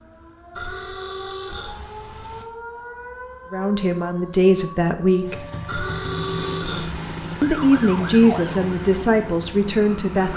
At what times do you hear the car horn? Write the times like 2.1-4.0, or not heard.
0.6-2.5, 5.7-7.3.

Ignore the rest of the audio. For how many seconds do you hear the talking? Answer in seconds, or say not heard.
5 s.